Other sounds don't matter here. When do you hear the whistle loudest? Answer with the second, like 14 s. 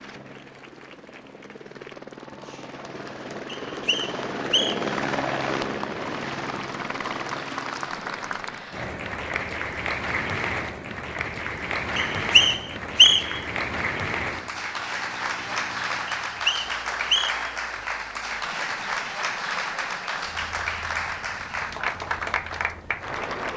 13 s.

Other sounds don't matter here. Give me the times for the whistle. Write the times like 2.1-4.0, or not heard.
3.5-4.8, 11.9-13.4, 16.1-17.5.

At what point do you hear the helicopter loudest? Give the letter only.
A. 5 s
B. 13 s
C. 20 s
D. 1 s
A.